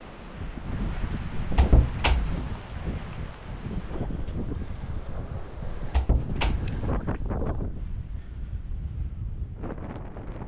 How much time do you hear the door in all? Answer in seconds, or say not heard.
3 s.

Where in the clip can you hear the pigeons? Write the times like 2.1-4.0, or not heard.
not heard.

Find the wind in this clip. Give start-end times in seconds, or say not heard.
0.0-10.4.